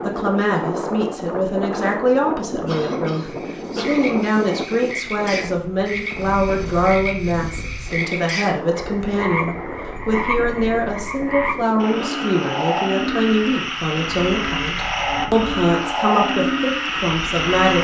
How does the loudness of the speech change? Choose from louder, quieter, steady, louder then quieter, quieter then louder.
steady.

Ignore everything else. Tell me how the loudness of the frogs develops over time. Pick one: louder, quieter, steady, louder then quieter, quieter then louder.
louder.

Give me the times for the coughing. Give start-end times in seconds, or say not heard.
2.6-4.3.